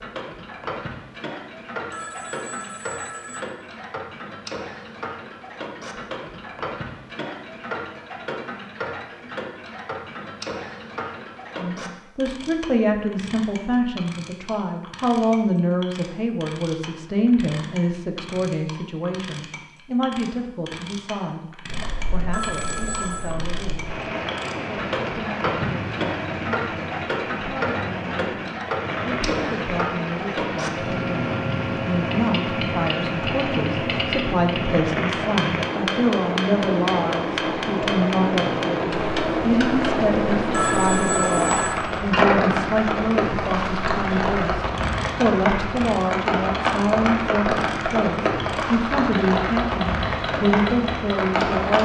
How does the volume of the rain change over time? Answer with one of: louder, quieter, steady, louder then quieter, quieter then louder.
louder.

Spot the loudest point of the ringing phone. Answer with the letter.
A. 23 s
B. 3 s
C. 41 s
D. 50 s
C.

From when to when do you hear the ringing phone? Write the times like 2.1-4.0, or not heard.
1.9-3.5, 22.3-23.4, 40.5-41.8.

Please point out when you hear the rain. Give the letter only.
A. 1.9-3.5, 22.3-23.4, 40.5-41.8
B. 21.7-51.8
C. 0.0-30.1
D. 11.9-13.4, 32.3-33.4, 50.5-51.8
B.